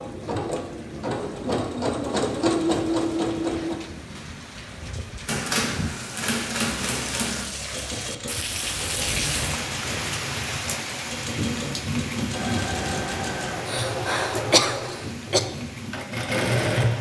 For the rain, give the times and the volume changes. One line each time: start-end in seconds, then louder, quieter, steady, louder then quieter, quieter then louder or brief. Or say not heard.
0.0-16.9 louder then quieter.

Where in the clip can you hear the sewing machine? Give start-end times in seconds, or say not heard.
0.0-3.8, 12.3-16.9.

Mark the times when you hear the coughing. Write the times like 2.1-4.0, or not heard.
13.7-15.4.